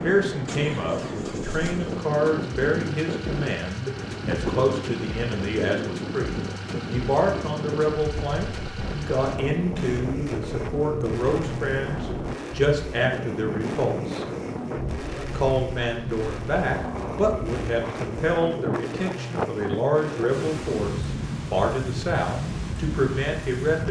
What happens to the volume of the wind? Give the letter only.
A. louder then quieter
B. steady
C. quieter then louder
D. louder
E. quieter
B.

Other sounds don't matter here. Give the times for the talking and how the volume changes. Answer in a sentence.
You can hear the talking from 0.0 to 14.2 s, at a steady volume; and from 15.3 to 23.8 s, at a steady volume.